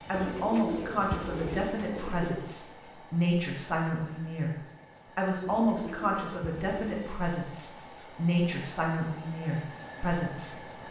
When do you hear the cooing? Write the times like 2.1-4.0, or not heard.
0.1-2.5, 5.5-7.2.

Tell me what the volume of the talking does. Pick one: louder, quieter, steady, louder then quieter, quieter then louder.
steady.